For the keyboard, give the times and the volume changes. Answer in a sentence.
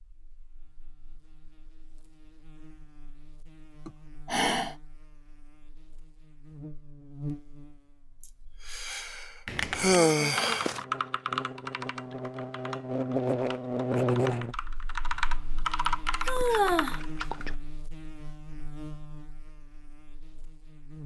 The keyboard can be heard from 9.4 to 17.6 s, getting quieter then louder.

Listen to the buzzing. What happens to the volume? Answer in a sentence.
The volume of the buzzing goes up, then down.